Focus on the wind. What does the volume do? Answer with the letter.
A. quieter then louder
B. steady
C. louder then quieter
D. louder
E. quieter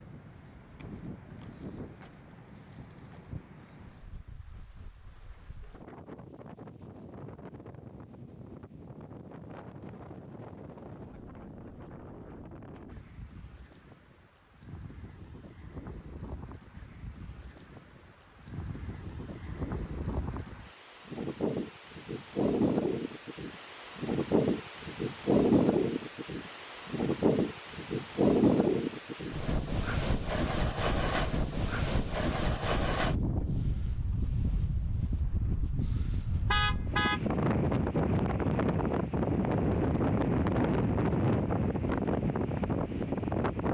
D.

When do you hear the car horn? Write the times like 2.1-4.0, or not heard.
36.5-37.2.